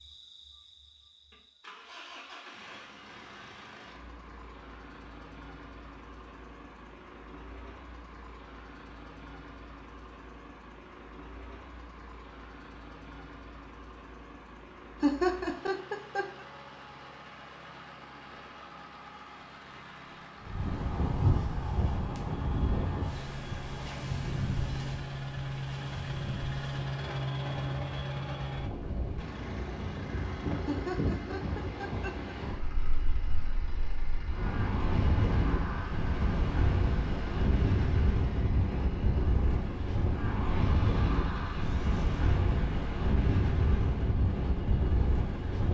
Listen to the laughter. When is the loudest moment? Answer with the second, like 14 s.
15 s.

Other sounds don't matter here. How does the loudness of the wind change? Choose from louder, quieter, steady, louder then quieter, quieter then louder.
quieter then louder.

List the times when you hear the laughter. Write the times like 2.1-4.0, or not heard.
15.0-16.2, 30.6-32.3.